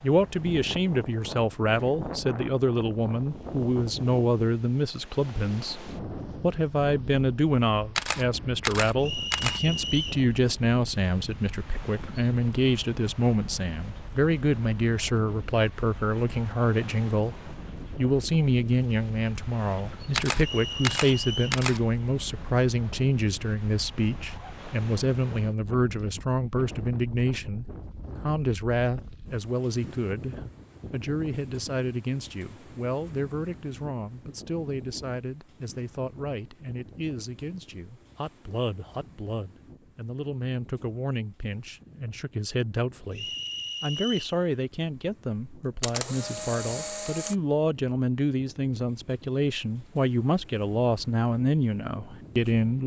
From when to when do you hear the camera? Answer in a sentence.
The camera can be heard from 8.0 to 9.6 s, from 20.1 to 21.8 s and from 45.8 to 47.4 s.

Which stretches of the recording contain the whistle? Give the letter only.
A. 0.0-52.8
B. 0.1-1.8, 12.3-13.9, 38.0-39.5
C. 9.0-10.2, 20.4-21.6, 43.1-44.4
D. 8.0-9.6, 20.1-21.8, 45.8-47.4
C.